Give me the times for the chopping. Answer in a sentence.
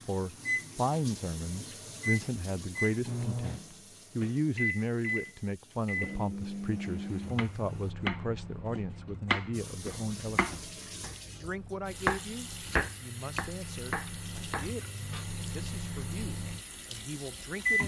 You can hear the chopping from 7.3 to 15.2 s.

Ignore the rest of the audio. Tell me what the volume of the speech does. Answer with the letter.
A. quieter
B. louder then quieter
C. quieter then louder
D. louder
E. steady
A.